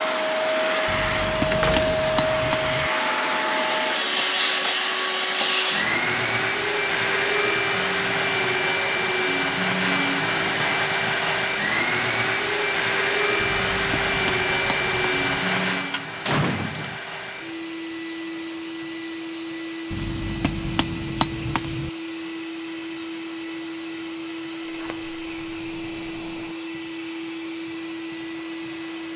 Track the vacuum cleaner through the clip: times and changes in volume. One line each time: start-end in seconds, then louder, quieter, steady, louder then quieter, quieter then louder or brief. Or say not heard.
0.0-29.1 quieter.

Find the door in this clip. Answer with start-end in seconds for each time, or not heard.
1.5-2.0, 15.8-17.0, 24.6-26.6.